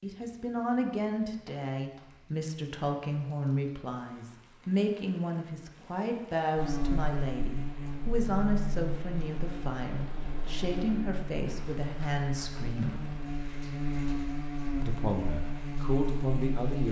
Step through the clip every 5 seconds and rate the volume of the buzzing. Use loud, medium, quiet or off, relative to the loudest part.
off, loud, loud, loud.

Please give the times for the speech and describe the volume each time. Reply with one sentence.
You can hear the speech from 0.0 to 12.9 s, at a steady volume; and briefly from 14.8 to 16.8 s.